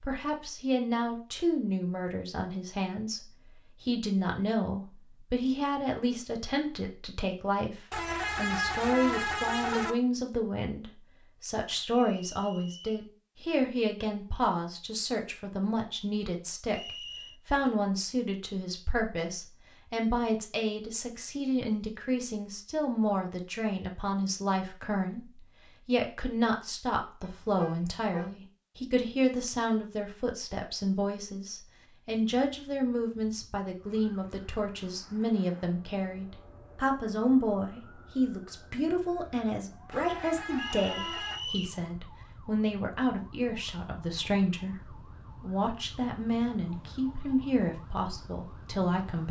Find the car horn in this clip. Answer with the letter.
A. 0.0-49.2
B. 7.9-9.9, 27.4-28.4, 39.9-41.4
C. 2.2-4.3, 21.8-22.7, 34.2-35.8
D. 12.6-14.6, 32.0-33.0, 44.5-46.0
B.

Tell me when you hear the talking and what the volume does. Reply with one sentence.
The talking can be heard from 0.0 to 49.2 s, at a steady volume.